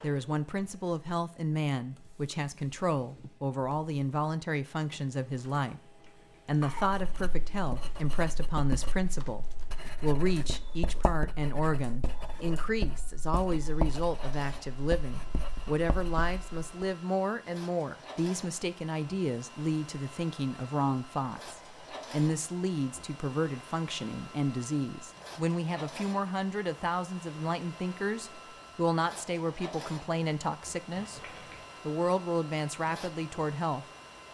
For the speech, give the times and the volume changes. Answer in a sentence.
The speech can be heard from 0.0 to 31.2 s, at a steady volume; and briefly from 31.9 to 33.9 s.